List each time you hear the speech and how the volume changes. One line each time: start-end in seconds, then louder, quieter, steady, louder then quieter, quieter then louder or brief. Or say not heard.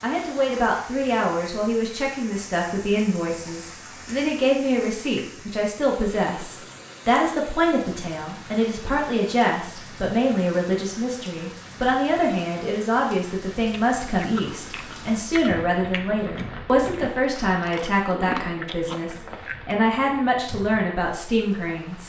0.0-22.0 steady.